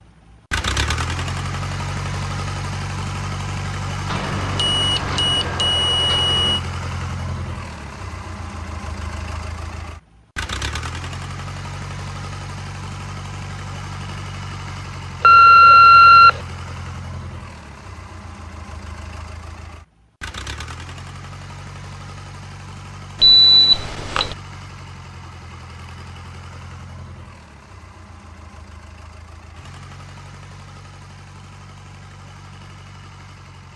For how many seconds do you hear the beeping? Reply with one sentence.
The beeping can be heard for 5 seconds in total.